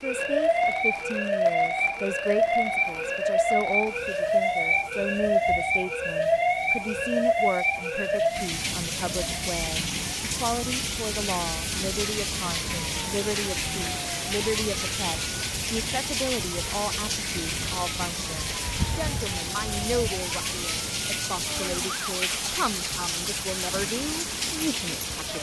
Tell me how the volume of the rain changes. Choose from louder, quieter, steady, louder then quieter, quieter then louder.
louder.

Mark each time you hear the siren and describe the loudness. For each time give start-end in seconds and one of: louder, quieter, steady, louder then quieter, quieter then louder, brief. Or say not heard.
0.0-25.3 quieter.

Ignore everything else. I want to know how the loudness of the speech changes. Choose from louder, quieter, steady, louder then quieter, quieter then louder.
steady.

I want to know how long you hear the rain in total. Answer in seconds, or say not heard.
25 s.